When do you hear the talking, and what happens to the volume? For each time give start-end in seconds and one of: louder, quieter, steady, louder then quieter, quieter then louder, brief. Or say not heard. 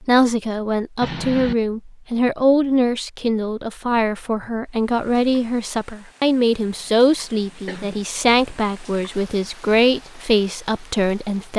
0.0-11.5 steady.